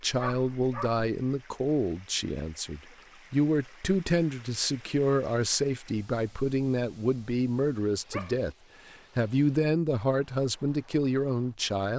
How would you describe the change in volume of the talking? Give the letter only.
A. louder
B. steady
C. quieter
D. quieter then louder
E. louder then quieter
B.